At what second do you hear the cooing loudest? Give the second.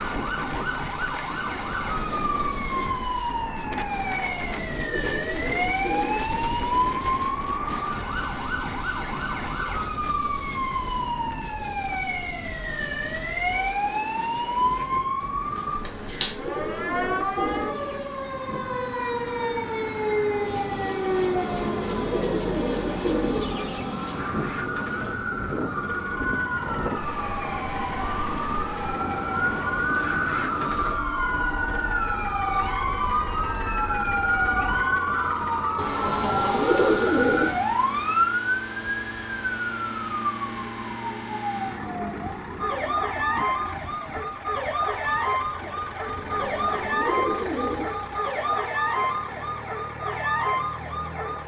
37 s.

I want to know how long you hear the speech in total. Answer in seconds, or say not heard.
not heard.